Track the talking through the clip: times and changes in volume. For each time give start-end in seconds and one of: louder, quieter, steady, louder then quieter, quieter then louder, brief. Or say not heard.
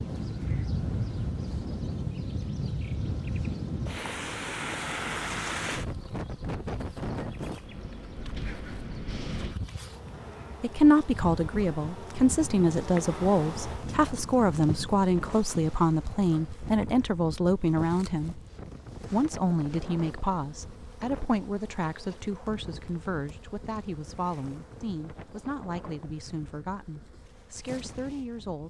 10.6-18.4 steady
19.1-28.6 quieter.